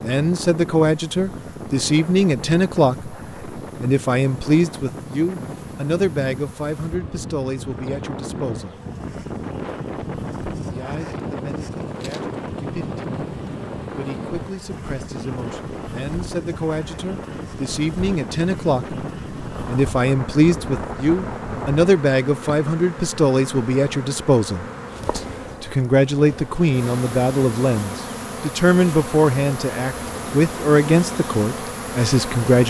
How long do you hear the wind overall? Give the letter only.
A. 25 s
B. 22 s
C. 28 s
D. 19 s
B.